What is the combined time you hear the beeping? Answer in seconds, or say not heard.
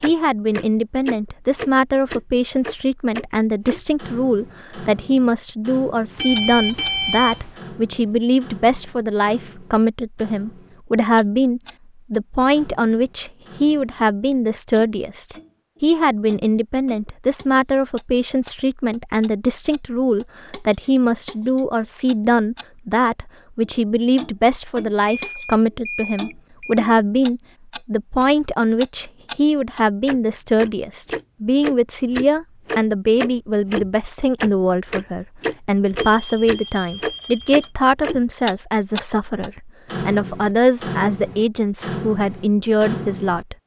5 s.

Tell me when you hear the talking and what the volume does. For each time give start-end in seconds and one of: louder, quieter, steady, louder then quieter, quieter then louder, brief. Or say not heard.
0.0-43.5 steady.